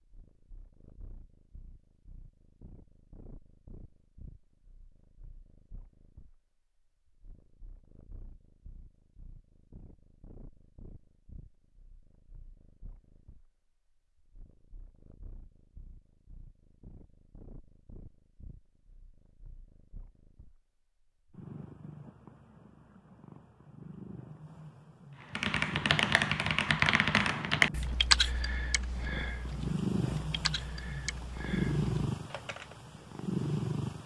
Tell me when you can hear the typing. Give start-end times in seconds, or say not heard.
25.3-32.8.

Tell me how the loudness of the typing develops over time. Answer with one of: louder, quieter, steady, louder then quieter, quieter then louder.
quieter.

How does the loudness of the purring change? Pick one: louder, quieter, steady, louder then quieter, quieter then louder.
louder.